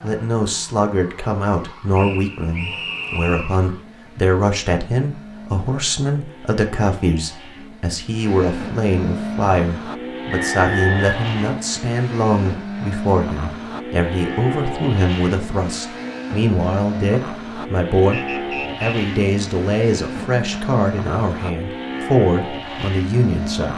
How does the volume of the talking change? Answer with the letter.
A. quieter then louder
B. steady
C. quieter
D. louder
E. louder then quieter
B.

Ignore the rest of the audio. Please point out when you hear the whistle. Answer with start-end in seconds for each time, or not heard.
1.9-3.6, 10.3-11.6, 18.1-18.9.